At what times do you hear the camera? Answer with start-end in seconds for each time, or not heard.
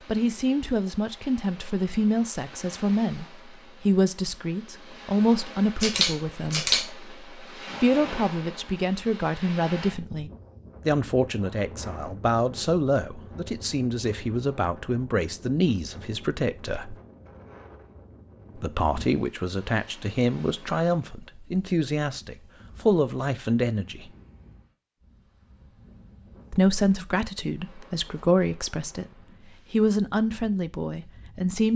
5.8-6.8.